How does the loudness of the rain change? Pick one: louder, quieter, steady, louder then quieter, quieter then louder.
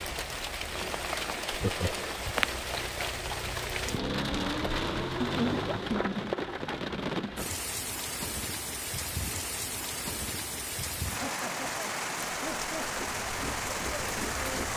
steady.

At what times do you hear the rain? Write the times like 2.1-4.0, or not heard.
0.0-14.7.